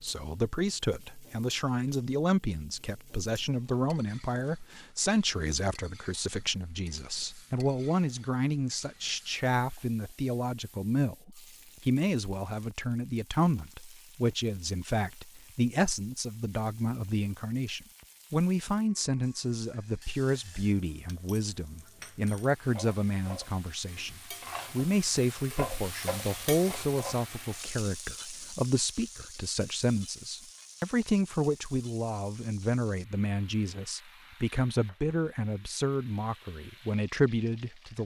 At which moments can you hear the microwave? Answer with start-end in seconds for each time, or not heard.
not heard.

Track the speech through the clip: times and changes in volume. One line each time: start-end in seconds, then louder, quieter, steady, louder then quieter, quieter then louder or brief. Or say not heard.
0.0-38.0 steady.